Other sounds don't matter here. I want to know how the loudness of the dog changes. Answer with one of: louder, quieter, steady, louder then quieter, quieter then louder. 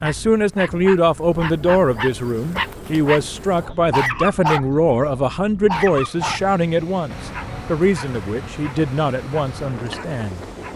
louder then quieter.